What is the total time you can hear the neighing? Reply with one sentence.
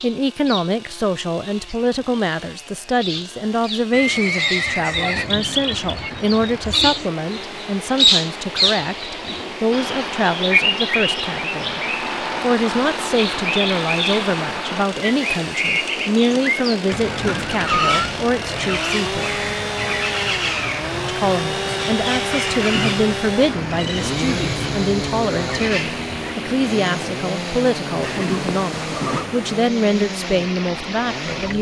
The neighing can be heard for 4 seconds in total.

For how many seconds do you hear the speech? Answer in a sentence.
You can hear the speech for 29 seconds altogether.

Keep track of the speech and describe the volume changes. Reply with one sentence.
The loudness of the speech stays about the same.